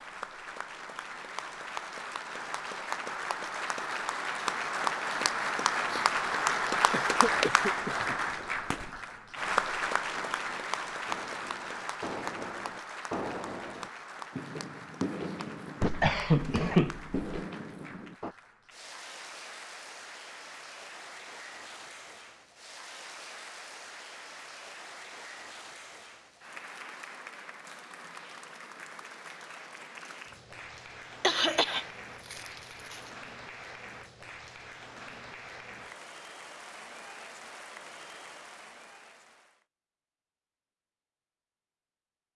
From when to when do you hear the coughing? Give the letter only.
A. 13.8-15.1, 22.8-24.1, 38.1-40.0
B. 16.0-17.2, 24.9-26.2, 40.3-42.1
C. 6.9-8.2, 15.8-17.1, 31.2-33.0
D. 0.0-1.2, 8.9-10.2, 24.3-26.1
C.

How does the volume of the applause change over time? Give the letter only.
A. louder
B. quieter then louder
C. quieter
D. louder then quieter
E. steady
C.